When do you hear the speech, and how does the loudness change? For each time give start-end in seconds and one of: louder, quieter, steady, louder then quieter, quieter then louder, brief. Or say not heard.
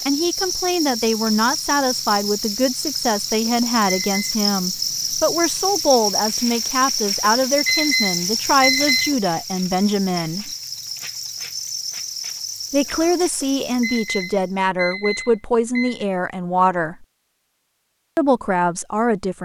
0.1-10.5 steady
12.7-17.1 steady
18.1-19.4 brief.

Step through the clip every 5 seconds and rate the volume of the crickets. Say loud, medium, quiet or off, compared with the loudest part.
loud, loud, medium, off.